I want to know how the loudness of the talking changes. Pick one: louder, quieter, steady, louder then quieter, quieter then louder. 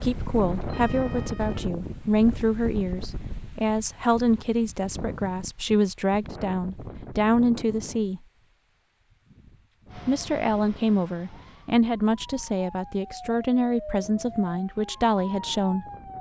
steady.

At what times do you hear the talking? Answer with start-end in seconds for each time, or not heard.
0.0-8.2, 10.1-15.8.